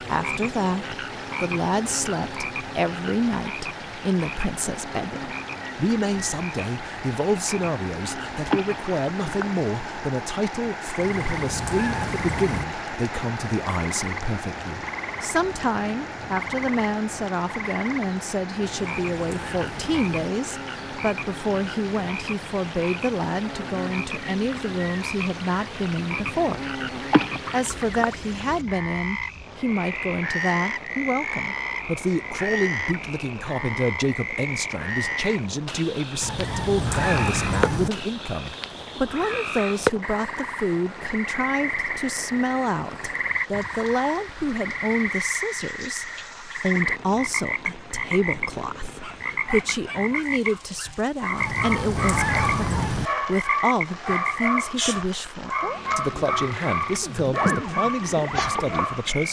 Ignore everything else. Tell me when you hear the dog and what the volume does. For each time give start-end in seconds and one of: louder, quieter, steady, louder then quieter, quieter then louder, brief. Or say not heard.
49.0-59.1 louder.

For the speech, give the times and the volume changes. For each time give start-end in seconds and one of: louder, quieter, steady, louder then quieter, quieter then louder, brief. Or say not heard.
0.0-26.6 steady
27.5-59.2 steady.